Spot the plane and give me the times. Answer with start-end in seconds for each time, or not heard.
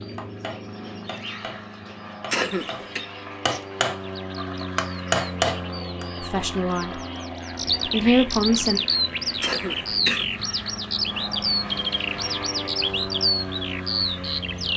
0.0-14.7.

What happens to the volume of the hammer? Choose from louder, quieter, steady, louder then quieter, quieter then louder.
louder.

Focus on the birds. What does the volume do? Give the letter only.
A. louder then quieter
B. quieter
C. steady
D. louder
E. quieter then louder
D.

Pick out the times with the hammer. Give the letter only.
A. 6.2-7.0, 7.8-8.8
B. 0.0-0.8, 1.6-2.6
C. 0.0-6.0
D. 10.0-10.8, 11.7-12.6
C.